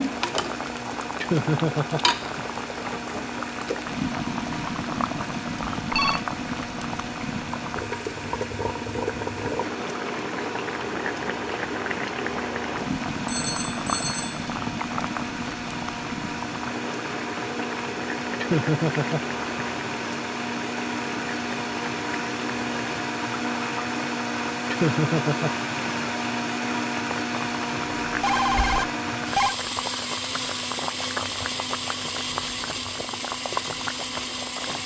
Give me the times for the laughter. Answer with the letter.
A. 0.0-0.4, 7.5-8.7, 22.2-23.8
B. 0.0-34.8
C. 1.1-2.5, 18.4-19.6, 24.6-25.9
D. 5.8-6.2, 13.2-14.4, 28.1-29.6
C.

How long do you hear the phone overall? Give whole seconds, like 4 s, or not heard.
3 s.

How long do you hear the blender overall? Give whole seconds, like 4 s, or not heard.
35 s.